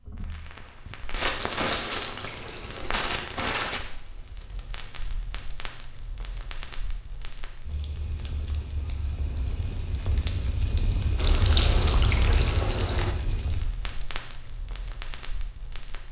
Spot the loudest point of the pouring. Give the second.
12 s.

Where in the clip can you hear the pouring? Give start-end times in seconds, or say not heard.
1.3-3.3, 11.2-13.2.